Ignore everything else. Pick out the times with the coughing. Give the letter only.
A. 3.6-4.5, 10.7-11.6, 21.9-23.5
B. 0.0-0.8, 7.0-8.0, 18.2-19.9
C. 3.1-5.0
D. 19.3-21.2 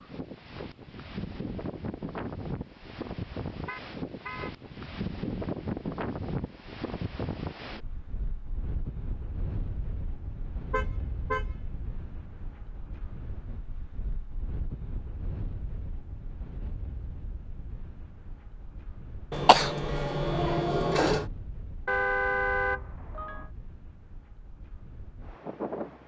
D.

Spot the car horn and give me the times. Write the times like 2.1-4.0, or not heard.
3.6-4.5, 10.7-11.6, 21.9-23.5.